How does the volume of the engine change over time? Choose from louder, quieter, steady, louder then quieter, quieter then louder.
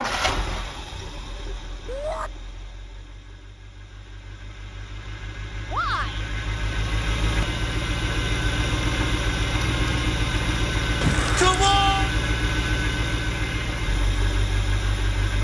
louder.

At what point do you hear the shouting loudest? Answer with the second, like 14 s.
12 s.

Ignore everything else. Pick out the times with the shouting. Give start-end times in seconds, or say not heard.
1.9-2.3, 5.7-6.3, 11.0-12.1.